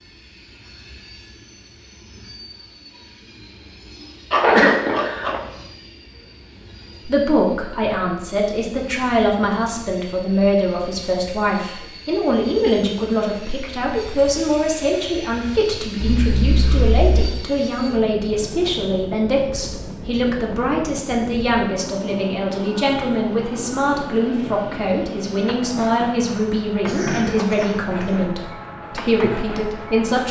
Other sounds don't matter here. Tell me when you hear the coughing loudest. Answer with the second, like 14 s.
5 s.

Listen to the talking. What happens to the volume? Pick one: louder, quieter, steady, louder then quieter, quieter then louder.
steady.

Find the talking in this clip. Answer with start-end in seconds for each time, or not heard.
7.0-30.2.